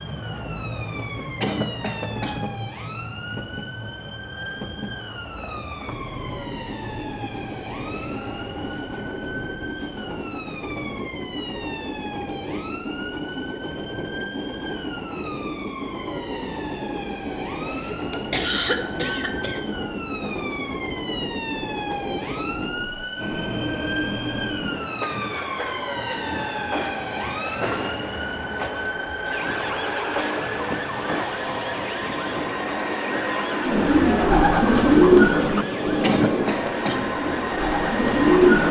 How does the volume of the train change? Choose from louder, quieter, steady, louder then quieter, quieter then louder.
louder.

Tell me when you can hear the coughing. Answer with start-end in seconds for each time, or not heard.
1.4-2.5, 17.9-19.8, 36.0-37.0.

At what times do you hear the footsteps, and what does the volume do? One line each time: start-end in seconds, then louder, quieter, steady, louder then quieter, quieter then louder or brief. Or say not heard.
not heard.